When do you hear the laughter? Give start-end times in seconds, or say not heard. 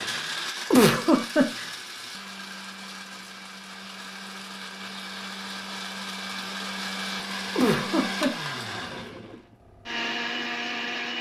0.7-1.6, 7.5-8.5.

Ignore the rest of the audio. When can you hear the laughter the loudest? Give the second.
1 s.